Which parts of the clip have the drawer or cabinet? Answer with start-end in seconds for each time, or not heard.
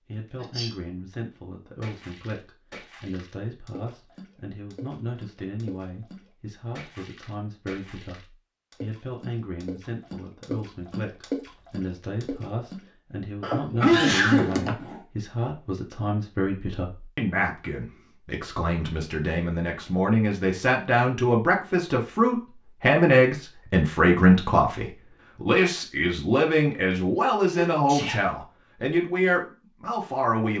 not heard.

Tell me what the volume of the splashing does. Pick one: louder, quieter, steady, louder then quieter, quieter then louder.
louder.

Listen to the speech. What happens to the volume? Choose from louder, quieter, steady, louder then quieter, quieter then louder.
louder.